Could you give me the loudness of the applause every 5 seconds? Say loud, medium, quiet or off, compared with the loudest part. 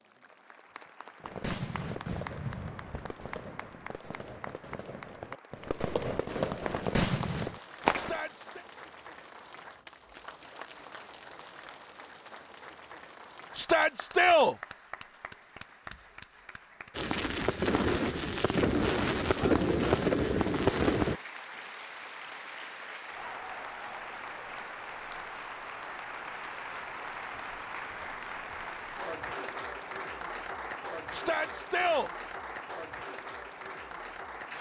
medium, medium, medium, medium, loud, loud, loud.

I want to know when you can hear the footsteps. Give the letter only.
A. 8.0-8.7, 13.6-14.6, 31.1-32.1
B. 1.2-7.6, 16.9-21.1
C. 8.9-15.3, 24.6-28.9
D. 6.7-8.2
D.